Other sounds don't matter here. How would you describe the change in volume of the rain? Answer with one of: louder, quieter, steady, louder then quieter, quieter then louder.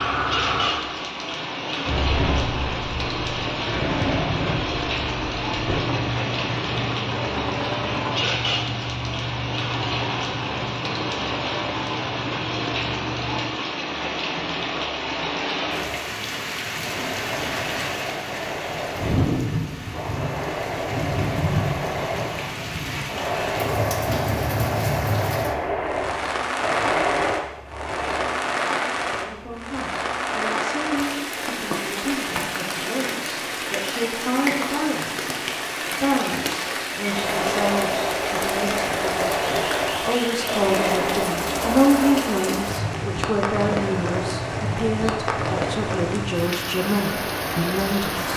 steady.